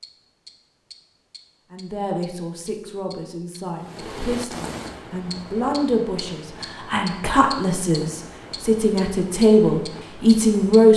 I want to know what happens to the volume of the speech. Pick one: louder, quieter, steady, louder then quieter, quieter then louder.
louder.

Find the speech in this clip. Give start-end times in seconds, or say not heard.
1.7-10.9.